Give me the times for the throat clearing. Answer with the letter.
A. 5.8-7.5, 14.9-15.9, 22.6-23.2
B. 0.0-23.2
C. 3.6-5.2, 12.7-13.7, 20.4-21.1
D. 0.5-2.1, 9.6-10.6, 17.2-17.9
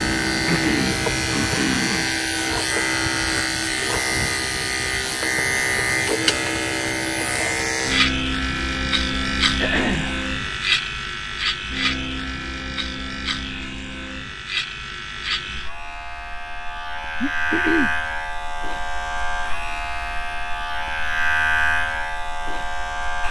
D.